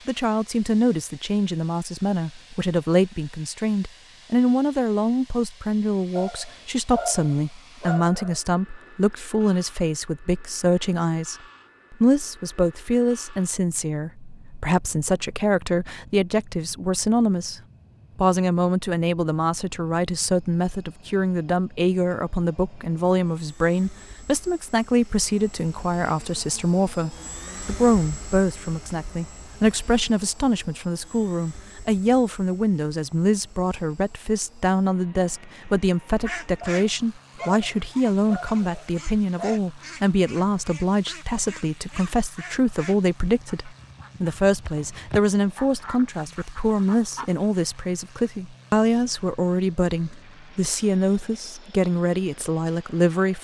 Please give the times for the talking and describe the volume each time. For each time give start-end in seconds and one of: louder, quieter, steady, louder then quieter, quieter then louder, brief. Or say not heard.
0.1-53.3 steady.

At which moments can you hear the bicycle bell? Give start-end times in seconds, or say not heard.
not heard.